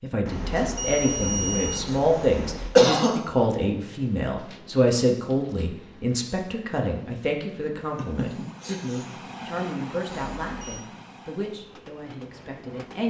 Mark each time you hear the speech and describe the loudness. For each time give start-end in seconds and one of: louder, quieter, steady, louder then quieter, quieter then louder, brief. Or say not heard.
0.0-13.0 quieter.